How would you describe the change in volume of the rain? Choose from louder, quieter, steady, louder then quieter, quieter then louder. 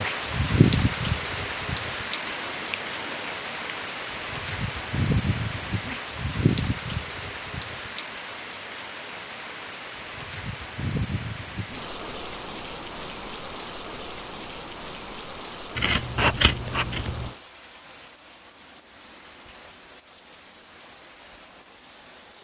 quieter.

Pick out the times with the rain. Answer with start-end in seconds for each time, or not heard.
0.0-22.3.